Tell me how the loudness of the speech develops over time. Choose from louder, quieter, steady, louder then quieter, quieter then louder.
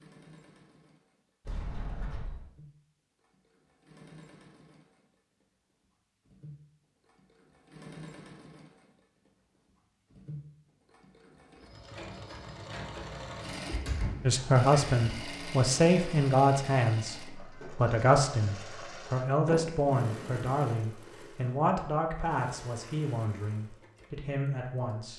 quieter.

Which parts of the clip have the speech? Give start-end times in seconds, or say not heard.
14.2-25.1.